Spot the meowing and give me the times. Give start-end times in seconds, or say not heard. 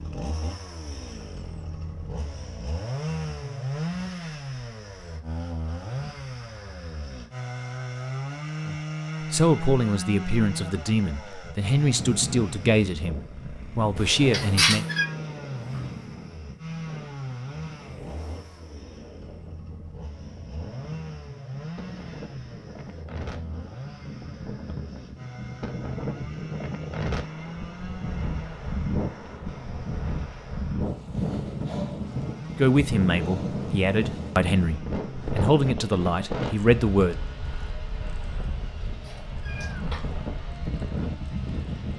13.9-15.1, 38.8-40.0.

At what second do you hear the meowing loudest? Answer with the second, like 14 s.
15 s.